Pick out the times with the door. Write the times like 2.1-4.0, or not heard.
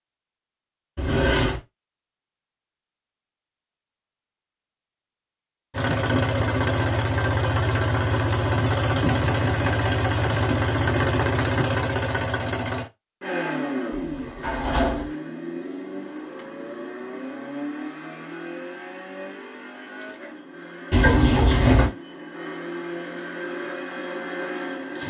0.9-1.6, 13.9-15.1, 20.9-21.9.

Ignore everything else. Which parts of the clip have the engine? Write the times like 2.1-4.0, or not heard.
5.7-25.0.